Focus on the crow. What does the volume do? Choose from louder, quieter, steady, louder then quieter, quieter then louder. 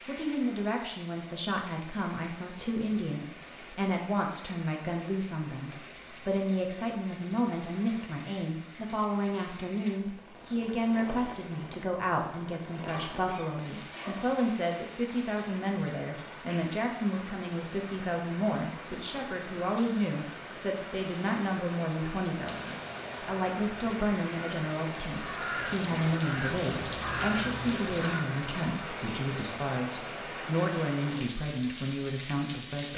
louder.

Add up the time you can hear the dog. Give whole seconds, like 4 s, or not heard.
not heard.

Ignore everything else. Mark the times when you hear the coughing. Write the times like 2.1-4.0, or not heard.
12.8-14.4.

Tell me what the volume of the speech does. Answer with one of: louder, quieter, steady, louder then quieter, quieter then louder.
steady.